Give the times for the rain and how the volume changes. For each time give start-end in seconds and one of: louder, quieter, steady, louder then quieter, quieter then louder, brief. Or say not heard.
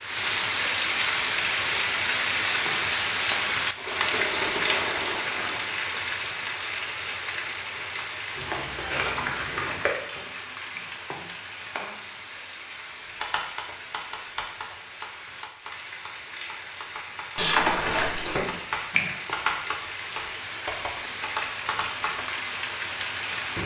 0.0-23.6 quieter then louder.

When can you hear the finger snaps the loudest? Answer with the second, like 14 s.
19 s.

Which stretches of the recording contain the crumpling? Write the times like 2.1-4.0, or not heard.
3.8-5.6, 8.3-9.9, 17.4-18.4.